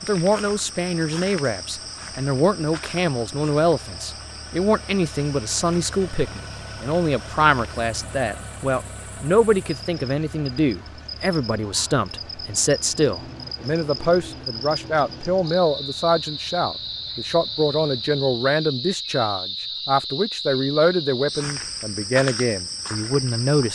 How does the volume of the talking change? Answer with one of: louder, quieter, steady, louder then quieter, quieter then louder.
steady.